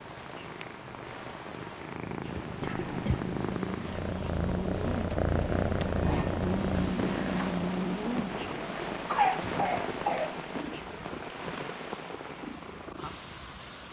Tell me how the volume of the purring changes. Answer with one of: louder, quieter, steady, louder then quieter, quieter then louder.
louder then quieter.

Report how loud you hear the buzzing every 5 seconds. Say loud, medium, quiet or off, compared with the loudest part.
medium, loud, off.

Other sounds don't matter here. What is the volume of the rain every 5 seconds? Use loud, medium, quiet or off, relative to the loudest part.
medium, loud, loud.